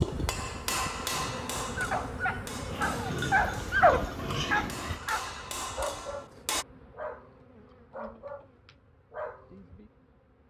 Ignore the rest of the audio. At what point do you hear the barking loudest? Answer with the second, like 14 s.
4 s.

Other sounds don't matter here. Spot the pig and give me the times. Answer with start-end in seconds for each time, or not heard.
2.7-5.0.